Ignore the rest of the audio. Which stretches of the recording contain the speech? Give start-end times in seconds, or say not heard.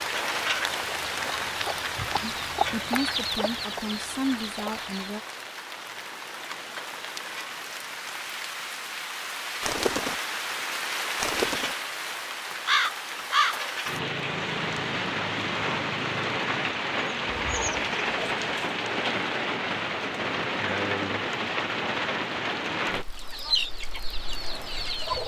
2.2-5.2.